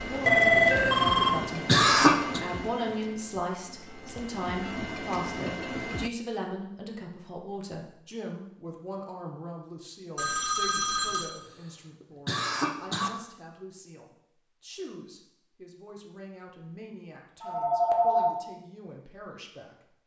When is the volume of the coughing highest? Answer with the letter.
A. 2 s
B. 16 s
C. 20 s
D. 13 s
A.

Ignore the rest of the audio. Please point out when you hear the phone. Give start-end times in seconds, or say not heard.
0.2-1.4, 10.2-11.3, 17.4-18.4.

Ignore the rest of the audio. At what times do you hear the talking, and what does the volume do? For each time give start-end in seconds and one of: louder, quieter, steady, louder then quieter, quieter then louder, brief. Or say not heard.
0.0-20.0 quieter.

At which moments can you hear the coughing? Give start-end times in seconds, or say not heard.
1.6-2.4, 12.0-13.1.